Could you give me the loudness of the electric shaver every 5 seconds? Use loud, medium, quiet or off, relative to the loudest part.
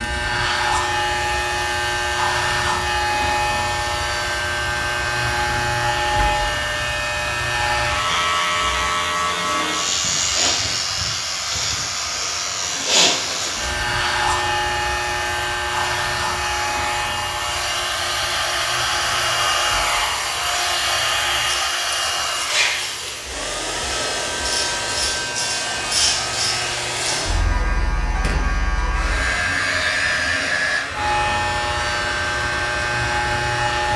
loud, loud, loud, medium, medium, loud, loud.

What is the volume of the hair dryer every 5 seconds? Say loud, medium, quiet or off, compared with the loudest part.
medium, medium, medium, loud, loud, medium, medium.